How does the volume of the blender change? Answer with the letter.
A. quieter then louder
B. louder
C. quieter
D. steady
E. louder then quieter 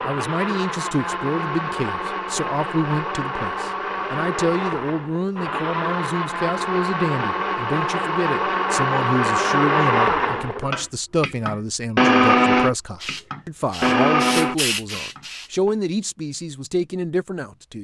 B.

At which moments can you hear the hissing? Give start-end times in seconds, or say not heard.
12.9-15.5.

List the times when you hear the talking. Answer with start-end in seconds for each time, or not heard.
0.1-17.7.